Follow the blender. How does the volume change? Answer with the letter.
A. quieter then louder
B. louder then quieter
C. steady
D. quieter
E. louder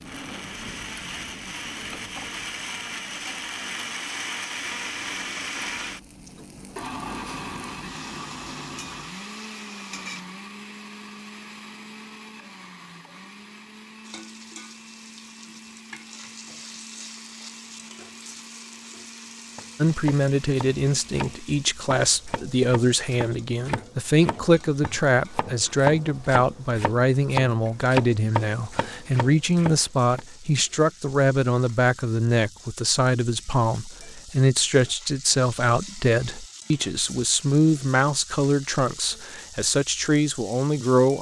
D.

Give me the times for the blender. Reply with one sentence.
You can hear the blender from 0.0 to 21.9 s.